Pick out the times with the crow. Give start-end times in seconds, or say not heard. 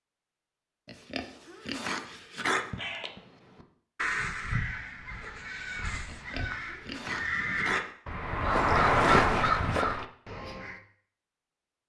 2.6-10.8.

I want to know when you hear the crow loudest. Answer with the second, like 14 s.
9 s.